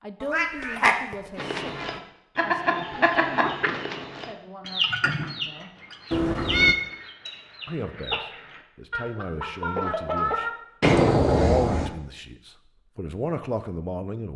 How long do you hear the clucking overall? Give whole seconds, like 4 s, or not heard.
9 s.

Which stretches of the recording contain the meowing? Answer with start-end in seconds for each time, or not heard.
0.2-2.0, 6.1-6.8, 10.8-11.9.